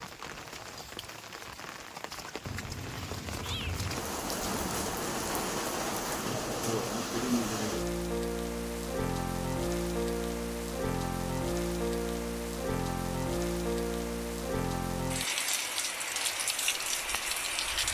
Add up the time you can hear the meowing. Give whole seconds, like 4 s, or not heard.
2 s.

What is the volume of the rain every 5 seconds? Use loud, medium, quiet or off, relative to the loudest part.
medium, loud, loud, loud.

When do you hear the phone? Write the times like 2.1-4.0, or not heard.
not heard.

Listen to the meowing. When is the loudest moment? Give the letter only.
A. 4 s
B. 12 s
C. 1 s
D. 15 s
A.